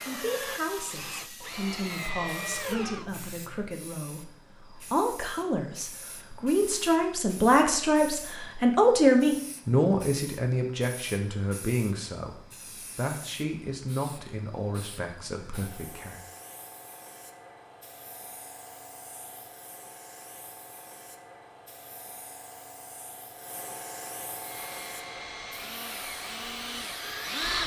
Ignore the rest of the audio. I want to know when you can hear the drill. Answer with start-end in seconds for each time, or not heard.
0.0-3.1, 24.4-27.6.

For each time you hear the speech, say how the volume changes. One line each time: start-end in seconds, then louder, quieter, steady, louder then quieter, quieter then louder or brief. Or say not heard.
0.0-16.2 louder then quieter.